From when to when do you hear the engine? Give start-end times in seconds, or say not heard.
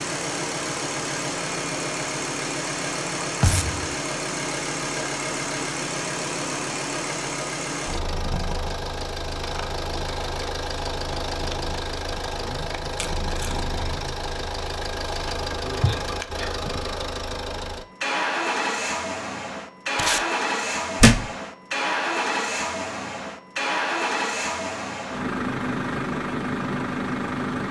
0.0-27.6.